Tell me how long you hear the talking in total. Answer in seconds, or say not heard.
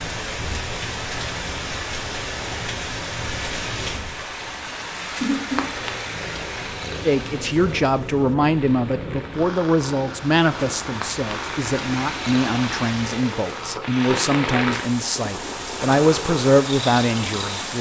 11 s.